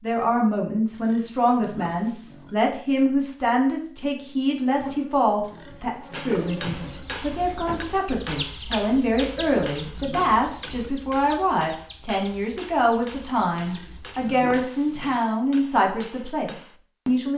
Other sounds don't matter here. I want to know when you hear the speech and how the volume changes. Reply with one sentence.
You can hear the speech from 0.0 to 17.3 s, at a steady volume.